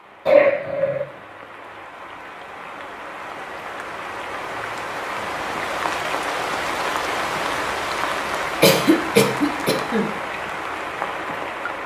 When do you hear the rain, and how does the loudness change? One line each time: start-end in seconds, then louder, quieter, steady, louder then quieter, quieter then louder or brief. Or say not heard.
0.0-11.8 louder.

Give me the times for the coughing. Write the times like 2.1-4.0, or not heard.
0.2-1.1, 8.6-10.1.